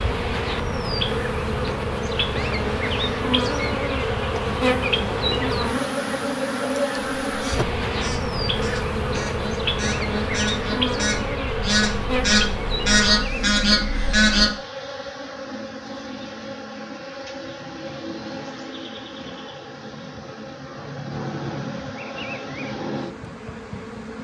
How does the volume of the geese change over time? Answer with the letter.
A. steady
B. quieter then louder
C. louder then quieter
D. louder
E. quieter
D.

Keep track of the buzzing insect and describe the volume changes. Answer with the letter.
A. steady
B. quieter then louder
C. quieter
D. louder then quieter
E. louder
C.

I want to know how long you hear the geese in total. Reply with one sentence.
You can hear the geese for 7 seconds altogether.